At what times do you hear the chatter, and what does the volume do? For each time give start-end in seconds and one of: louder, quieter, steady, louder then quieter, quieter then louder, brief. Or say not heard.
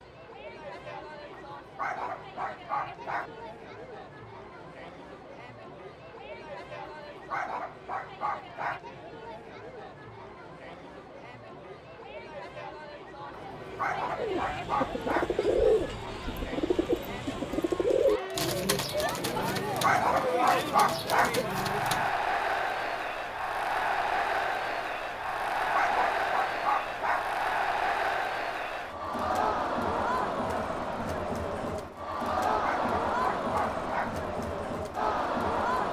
0.0-35.8 louder.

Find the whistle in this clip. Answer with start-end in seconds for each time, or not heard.
not heard.